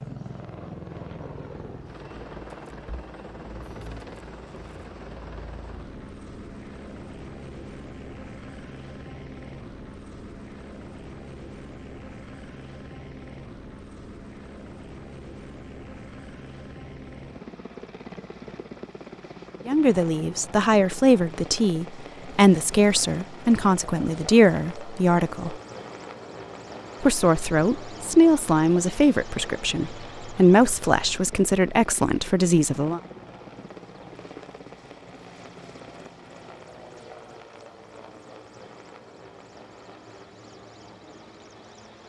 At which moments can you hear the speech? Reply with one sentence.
You can hear the speech from 19.6 to 25.6 s and from 27.0 to 33.0 s.